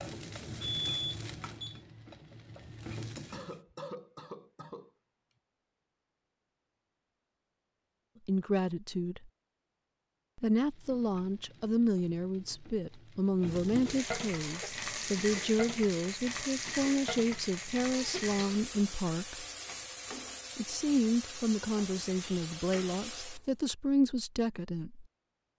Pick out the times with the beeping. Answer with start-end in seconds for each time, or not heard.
0.6-1.8.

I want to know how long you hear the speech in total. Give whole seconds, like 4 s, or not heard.
15 s.